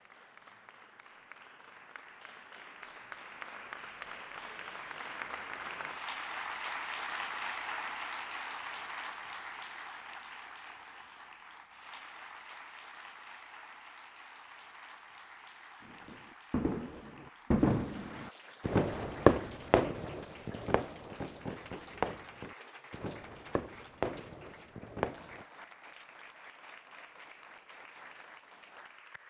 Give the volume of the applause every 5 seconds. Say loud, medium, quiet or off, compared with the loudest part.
medium, loud, medium, quiet, quiet, quiet.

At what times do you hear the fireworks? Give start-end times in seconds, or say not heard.
15.8-25.4.